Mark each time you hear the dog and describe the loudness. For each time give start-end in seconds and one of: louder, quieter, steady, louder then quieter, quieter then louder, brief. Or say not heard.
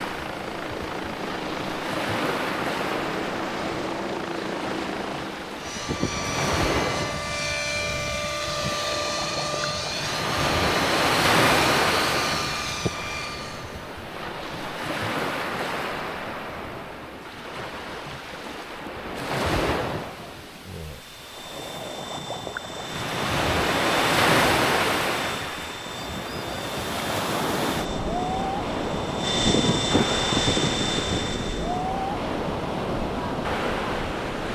not heard.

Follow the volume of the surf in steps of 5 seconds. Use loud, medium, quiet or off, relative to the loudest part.
medium, medium, loud, medium, loud, loud, loud.